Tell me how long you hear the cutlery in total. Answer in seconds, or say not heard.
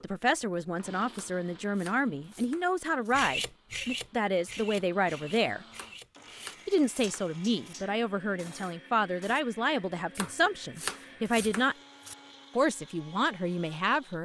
6 s.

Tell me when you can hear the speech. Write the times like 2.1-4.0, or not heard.
0.0-5.7, 6.7-11.8, 12.6-14.2.